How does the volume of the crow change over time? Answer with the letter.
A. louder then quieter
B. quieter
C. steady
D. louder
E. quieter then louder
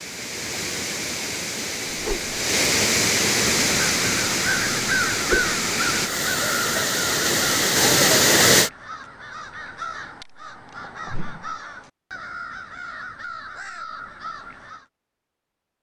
B.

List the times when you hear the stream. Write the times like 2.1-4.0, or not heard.
0.0-8.7.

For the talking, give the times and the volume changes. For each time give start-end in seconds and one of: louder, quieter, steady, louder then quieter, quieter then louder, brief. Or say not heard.
not heard.